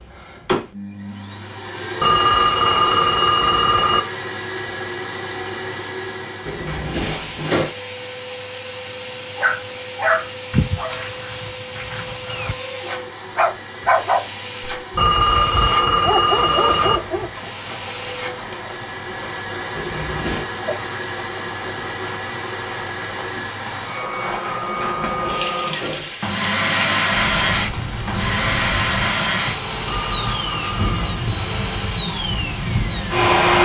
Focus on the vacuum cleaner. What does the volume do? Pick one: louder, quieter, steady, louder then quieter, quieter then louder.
louder.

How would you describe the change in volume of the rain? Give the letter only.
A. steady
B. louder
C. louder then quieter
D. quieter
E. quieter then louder
B.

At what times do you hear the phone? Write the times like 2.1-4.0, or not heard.
2.0-4.0, 14.9-17.0, 29.9-31.0.